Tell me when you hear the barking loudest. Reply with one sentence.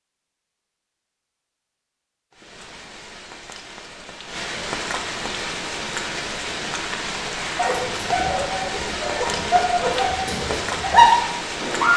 The volume of the barking peaks at 11 seconds.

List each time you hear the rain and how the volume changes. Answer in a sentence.
You can hear the rain from 2.3 to 11.9 s, getting louder.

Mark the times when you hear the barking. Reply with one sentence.
You can hear the barking from 7.5 to 11.9 s.